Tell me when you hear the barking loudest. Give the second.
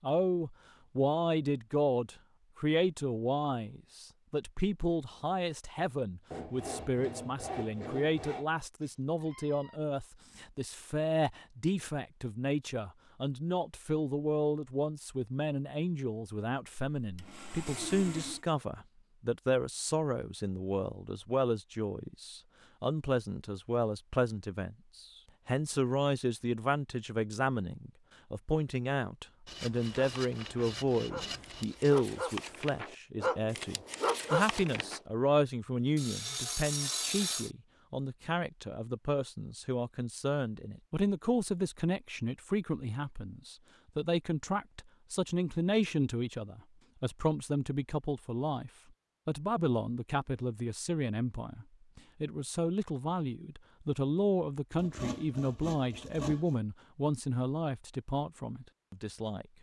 34 s.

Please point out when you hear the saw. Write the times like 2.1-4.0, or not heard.
6.3-8.4, 16.9-18.4, 29.4-32.0, 36.0-37.5, 54.8-56.6.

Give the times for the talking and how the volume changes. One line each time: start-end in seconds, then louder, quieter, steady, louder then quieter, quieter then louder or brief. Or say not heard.
0.0-59.5 steady.